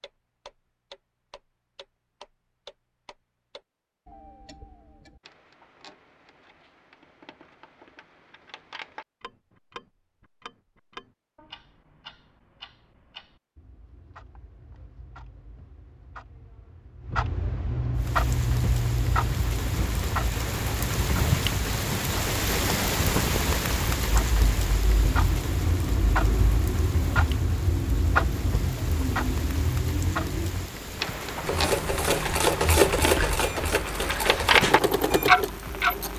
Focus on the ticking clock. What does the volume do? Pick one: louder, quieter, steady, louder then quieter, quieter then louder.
louder.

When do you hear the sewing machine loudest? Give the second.
33 s.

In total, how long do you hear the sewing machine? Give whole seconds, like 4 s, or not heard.
5 s.